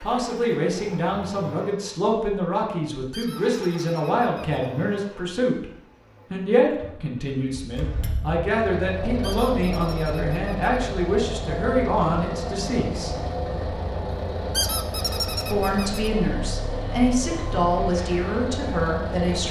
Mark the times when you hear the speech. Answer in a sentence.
You can hear the speech from 0.0 to 5.7 s, from 6.3 to 13.2 s and from 15.5 to 19.4 s.